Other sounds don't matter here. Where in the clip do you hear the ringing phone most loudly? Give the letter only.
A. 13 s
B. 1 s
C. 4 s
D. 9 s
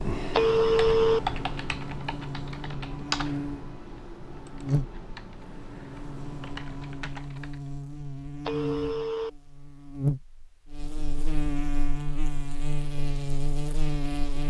B.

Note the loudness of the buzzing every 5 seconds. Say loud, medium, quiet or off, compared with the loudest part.
loud, medium, loud.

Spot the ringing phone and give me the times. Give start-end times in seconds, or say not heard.
0.3-1.2, 8.4-9.3.